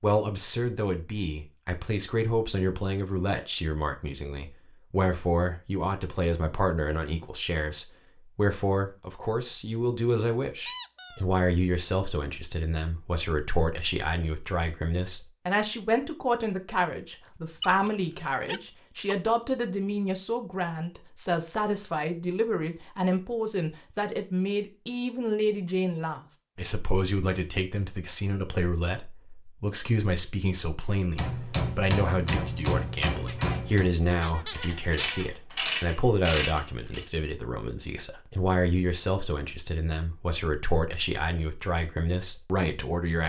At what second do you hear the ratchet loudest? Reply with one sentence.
The volume of the ratchet peaks at 36 seconds.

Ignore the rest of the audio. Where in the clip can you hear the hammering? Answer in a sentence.
The hammering can be heard from 31.1 to 33.9 s.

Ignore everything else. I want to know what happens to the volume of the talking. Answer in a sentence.
The volume of the talking stays about the same.